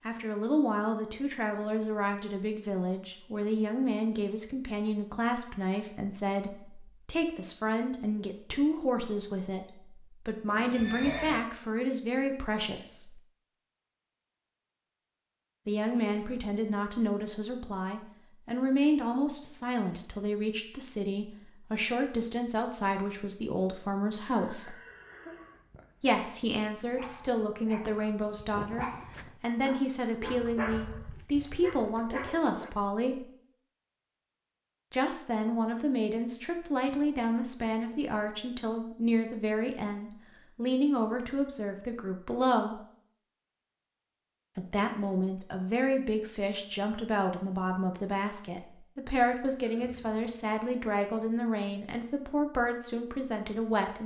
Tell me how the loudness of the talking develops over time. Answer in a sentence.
The volume of the talking stays about the same.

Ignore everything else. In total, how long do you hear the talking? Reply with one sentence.
You can hear the talking for 47 seconds altogether.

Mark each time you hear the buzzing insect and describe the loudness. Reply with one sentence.
The buzzing insect can't be heard in this clip.